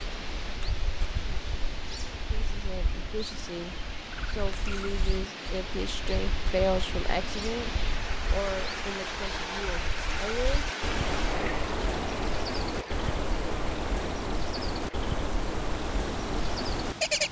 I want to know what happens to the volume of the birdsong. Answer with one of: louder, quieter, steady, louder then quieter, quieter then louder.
louder.